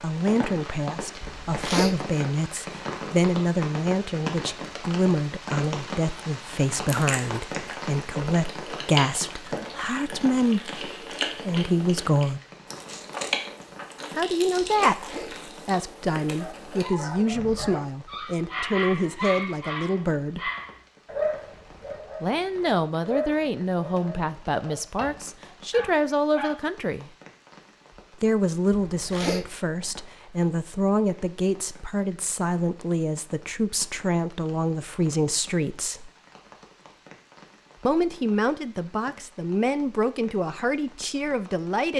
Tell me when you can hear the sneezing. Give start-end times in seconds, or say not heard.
1.2-2.0, 14.6-15.4, 28.7-29.5.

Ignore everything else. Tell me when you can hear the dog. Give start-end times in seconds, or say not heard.
16.4-26.6.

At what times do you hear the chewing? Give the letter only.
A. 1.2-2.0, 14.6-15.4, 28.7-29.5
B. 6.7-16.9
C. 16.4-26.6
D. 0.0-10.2
B.